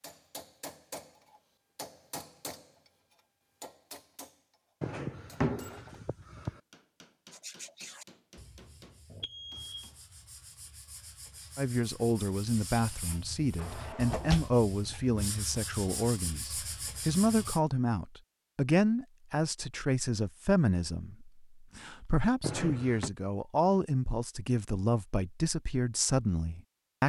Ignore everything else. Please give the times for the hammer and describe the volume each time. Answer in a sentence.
You can hear the hammer from 0.0 to 10.0 s, getting quieter.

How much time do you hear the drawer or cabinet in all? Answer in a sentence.
The drawer or cabinet can be heard for 4 seconds in total.